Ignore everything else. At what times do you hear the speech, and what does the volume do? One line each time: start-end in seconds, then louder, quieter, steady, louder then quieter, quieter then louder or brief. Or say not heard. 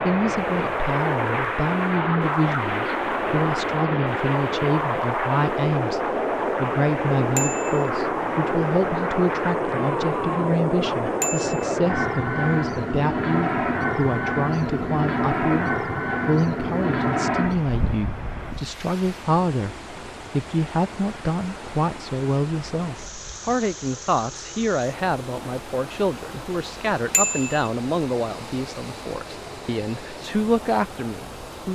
0.0-31.7 steady.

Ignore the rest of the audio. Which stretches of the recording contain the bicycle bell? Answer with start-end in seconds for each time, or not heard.
7.3-7.9, 11.2-11.6, 27.1-27.7.